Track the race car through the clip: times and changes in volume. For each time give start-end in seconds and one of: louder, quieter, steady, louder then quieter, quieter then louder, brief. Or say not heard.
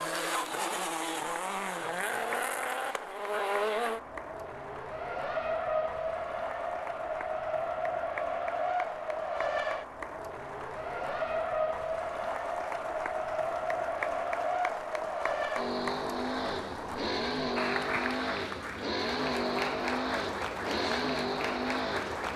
0.0-22.3 steady.